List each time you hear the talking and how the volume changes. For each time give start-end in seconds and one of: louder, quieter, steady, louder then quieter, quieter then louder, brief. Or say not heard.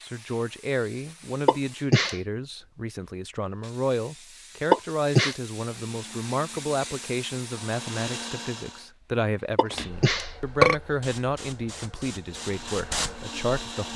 0.0-13.9 steady.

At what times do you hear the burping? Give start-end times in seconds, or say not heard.
1.4-2.1, 4.7-5.3, 9.6-10.8.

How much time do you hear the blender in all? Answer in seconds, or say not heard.
5 s.